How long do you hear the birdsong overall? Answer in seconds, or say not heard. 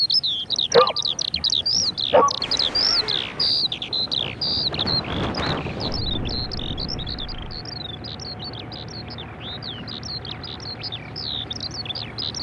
12 s.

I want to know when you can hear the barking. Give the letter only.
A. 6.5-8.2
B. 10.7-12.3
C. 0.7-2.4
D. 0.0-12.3
C.